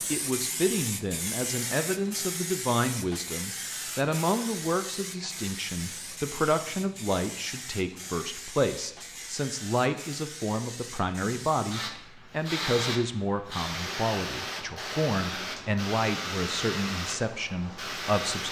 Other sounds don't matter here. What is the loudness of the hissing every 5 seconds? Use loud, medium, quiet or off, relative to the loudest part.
loud, medium, loud, loud.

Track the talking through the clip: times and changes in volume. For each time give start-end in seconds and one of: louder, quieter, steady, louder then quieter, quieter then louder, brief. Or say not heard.
0.1-18.4 steady.